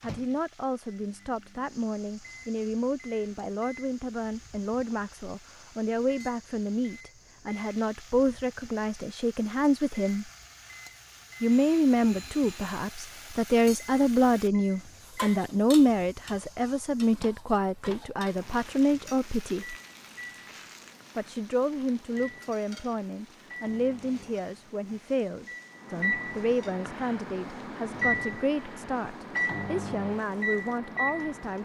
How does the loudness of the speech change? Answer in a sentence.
The loudness of the speech goes up, then down.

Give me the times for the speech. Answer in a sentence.
The speech can be heard from 0.0 to 10.2 s, from 11.4 to 19.8 s and from 21.1 to 31.6 s.